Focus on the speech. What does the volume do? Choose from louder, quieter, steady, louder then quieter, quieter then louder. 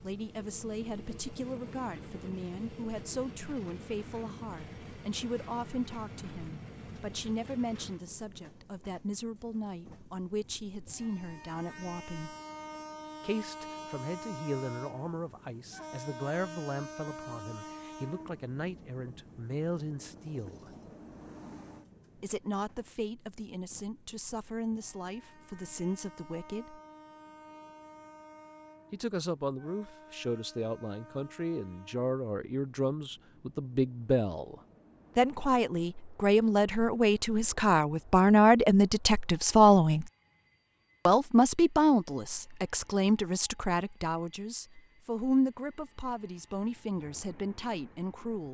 louder.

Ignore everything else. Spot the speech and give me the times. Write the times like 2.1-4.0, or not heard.
0.0-12.3, 13.2-20.7, 22.2-26.8, 28.9-34.5, 35.1-40.0, 41.0-48.4.